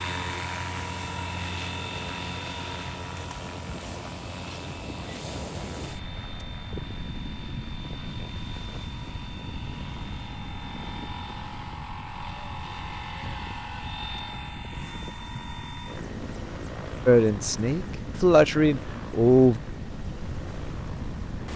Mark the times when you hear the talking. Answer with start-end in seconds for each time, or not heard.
17.1-19.6.